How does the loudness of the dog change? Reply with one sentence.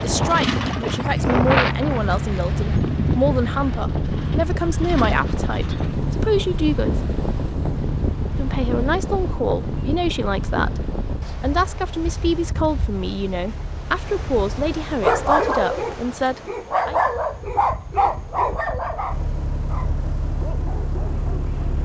The volume of the dog goes down.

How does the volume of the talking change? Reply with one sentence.
The loudness of the talking stays about the same.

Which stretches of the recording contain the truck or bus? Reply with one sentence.
The truck or bus can be heard from 0.0 to 15.4 s and from 18.1 to 21.8 s.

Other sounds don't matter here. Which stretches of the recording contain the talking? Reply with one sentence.
You can hear the talking from 0.0 to 7.0 s and from 8.3 to 17.0 s.